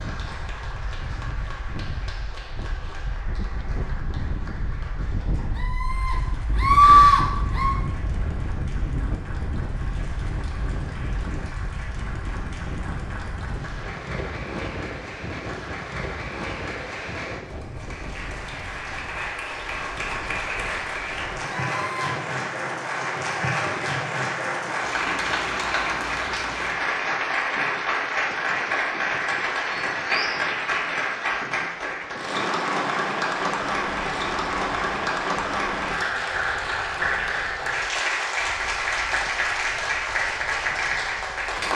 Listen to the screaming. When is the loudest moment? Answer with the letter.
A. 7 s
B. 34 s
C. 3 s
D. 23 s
A.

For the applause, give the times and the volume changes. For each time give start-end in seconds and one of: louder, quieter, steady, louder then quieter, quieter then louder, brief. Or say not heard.
0.0-41.7 louder.